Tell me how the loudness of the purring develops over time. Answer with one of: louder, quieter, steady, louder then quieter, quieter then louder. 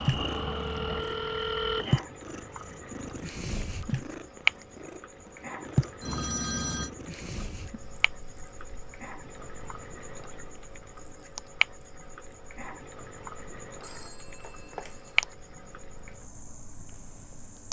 quieter.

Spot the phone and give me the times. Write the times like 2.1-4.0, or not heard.
0.2-1.9, 6.0-6.9, 13.8-15.3.